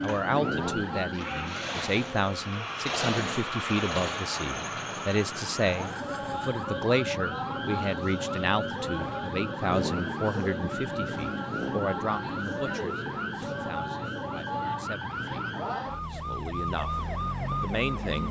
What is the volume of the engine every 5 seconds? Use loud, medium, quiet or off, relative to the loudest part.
loud, medium, off, off.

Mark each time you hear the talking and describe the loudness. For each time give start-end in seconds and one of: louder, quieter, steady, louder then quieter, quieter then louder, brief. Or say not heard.
0.0-15.5 quieter
16.1-18.2 brief.